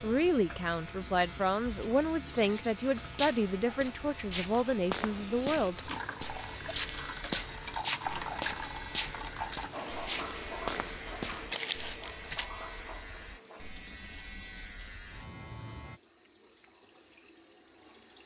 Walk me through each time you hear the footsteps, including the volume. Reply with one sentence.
You can hear the footsteps from 3.0 to 12.4 s, at a steady volume.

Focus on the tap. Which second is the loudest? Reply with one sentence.
The volume of the tap peaks at 8 seconds.